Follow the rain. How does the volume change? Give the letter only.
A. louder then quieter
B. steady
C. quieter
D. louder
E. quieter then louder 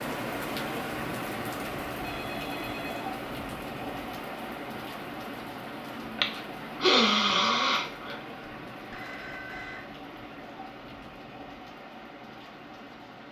C.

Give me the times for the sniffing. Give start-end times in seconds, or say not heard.
6.2-8.2.